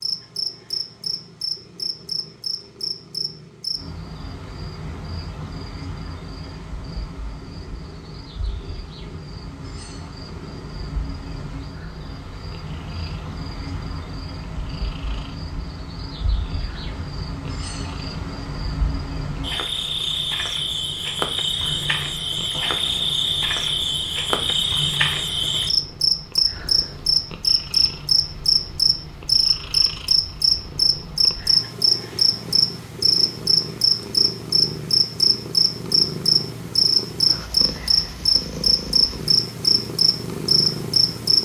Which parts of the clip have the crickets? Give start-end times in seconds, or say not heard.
0.0-41.4.